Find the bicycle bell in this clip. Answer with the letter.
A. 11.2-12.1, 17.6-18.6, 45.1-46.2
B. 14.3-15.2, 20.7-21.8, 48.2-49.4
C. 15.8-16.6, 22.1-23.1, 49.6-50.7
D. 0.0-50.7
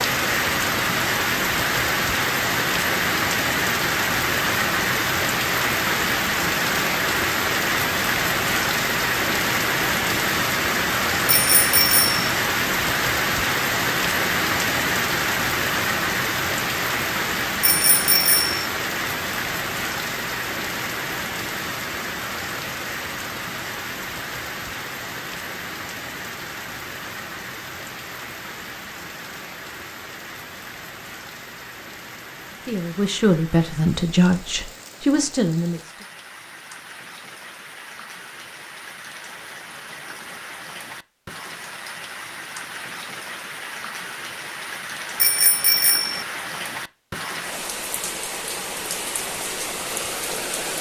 A.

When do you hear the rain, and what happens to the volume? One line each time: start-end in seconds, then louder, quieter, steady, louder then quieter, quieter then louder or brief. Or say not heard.
0.0-50.7 quieter then louder.